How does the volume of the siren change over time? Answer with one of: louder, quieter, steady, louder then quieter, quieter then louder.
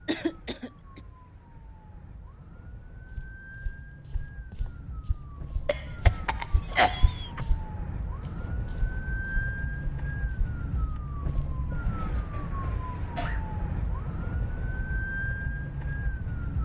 louder.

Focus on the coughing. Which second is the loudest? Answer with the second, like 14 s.
7 s.